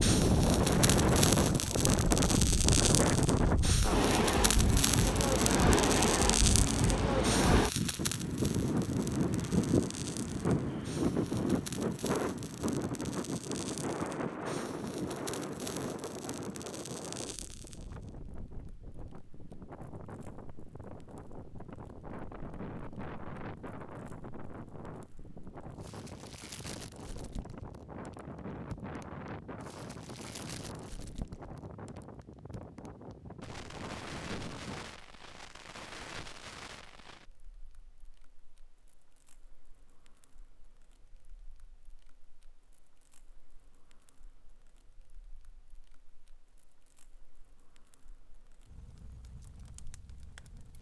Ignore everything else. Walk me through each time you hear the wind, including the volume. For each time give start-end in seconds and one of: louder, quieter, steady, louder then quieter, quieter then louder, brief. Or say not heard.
0.0-35.0 quieter.